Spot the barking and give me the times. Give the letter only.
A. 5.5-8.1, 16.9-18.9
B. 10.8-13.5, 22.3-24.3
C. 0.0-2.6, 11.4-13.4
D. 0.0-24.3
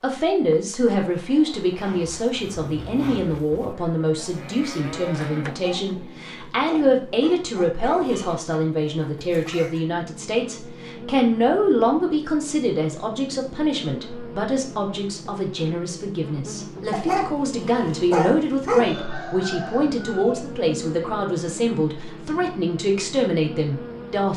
A.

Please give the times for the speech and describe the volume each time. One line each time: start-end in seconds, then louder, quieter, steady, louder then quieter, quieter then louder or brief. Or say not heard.
0.0-24.3 steady.